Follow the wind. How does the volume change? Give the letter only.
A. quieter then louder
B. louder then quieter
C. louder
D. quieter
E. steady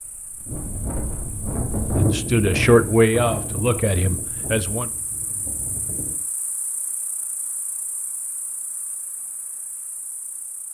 B.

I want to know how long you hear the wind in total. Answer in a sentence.
You can hear the wind for 6 seconds altogether.